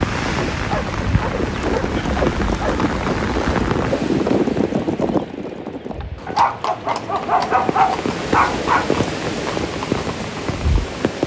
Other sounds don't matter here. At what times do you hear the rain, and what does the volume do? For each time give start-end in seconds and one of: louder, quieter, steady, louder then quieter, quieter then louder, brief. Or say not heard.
0.0-11.2 quieter then louder.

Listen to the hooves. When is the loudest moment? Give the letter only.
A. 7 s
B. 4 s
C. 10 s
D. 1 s
B.